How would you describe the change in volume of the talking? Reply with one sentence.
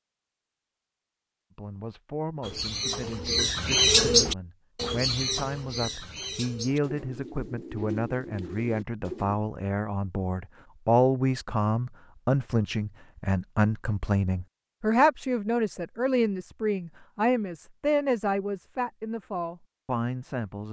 The volume of the talking goes up.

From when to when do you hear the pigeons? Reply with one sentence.
The pigeons can be heard from 2.4 to 9.4 s.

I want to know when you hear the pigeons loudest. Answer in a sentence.
The volume of the pigeons peaks at 4 seconds.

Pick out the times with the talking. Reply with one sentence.
The talking can be heard from 1.6 to 20.6 s.